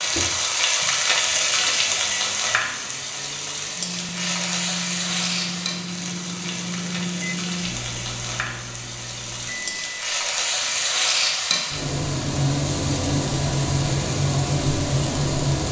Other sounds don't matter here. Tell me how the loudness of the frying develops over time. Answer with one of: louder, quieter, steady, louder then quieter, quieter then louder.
quieter then louder.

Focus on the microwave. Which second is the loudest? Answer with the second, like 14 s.
7 s.